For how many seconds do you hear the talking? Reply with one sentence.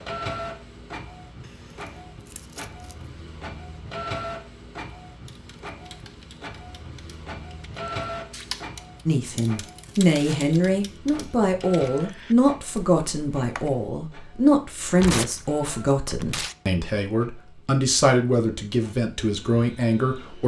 You can hear the talking for 11 seconds altogether.